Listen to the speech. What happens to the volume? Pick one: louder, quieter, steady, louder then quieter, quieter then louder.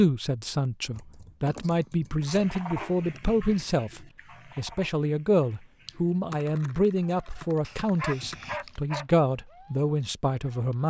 steady.